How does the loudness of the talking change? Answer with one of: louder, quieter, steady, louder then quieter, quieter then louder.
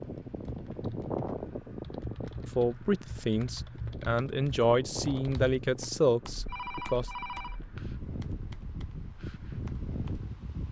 louder.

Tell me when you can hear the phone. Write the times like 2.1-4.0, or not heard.
6.5-7.7.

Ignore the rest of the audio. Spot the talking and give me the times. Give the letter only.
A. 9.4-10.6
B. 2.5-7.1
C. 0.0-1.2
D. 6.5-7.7
B.